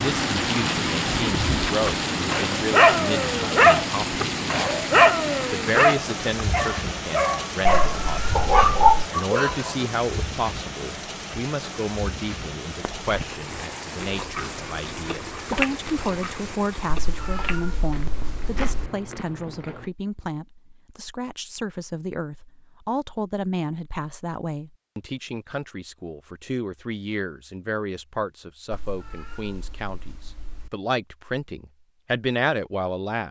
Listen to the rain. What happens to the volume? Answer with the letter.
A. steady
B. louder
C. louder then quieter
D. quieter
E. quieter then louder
D.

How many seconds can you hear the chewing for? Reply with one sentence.
You can hear the chewing for 7 seconds altogether.